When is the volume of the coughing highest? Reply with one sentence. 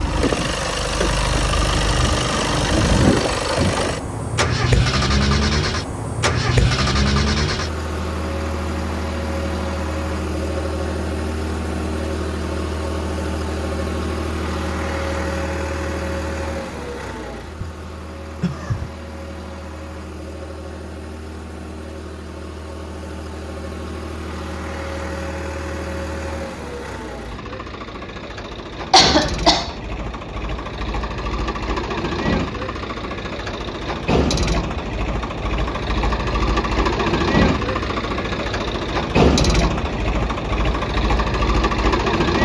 The loudest moment of the coughing is at 29 seconds.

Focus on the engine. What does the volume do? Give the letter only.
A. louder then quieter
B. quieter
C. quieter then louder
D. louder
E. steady
C.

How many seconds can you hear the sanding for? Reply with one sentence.
You can't hear the sanding here.